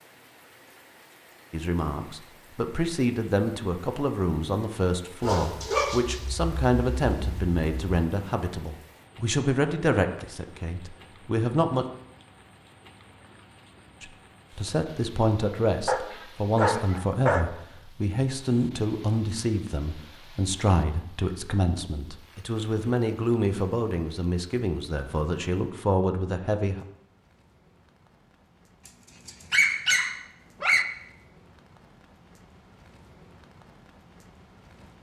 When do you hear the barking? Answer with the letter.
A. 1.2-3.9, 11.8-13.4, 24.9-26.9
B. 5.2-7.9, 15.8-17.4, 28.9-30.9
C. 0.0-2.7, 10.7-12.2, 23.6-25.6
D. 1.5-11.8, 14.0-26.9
B.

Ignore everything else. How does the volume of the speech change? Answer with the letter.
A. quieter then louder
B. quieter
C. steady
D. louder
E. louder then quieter
C.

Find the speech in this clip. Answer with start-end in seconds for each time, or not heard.
1.5-11.8, 14.0-26.9.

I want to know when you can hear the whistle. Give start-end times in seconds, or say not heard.
not heard.